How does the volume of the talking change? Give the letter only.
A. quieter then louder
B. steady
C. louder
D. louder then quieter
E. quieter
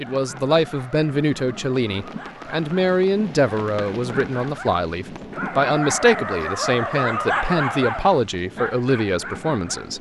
B.